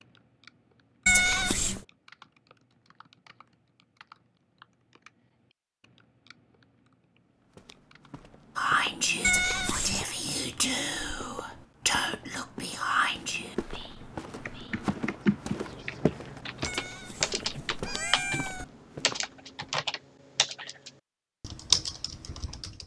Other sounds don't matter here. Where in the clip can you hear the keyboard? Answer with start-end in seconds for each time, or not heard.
0.0-8.1, 13.9-22.8.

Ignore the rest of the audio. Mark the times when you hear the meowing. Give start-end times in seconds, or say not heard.
1.1-1.8, 9.2-10.1, 16.6-18.6.